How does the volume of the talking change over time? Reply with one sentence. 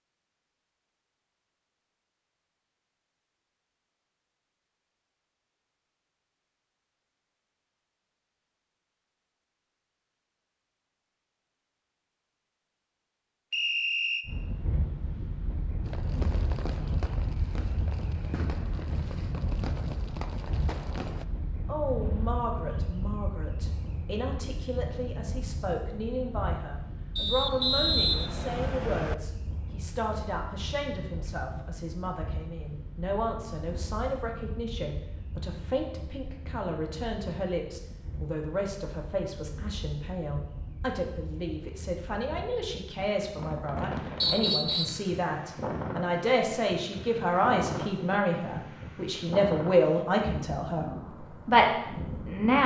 The loudness of the talking goes up.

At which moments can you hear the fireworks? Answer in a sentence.
You can hear the fireworks from 15.8 to 21.2 s.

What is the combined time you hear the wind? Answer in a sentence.
The wind can be heard for 38 seconds in total.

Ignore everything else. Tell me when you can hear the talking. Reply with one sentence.
The talking can be heard from 21.6 to 52.6 s.